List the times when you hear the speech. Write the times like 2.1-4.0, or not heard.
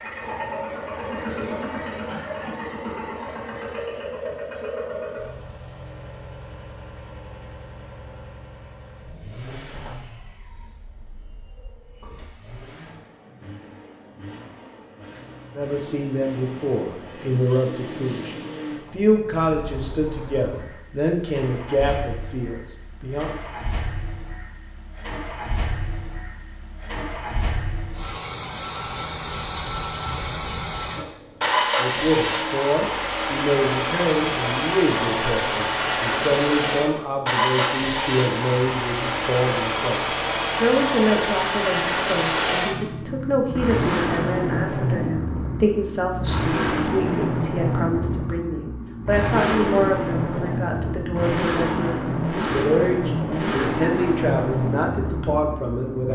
15.6-23.3, 31.8-56.1.